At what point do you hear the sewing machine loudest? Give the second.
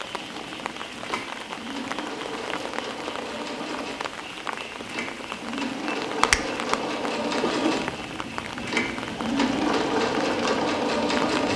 11 s.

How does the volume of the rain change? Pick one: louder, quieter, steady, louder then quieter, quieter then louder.
steady.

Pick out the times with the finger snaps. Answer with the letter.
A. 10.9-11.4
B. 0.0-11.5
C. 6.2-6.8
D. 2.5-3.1
C.